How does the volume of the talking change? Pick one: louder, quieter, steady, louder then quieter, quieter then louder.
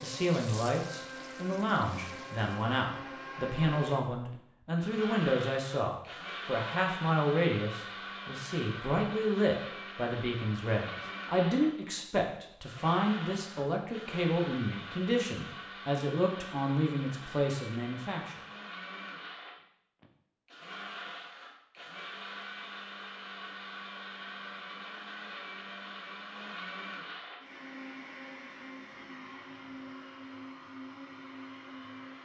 steady.